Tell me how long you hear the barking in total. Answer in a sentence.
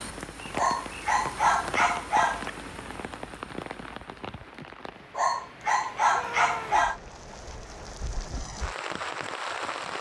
You can hear the barking for 4 seconds altogether.